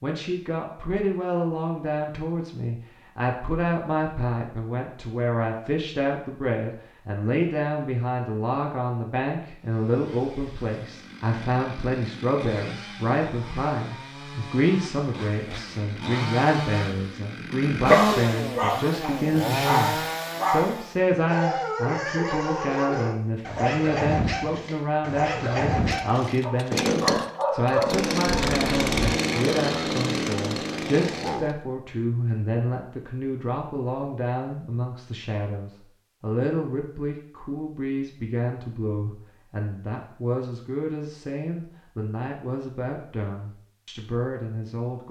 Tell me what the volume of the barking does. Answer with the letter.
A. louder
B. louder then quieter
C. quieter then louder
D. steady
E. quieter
D.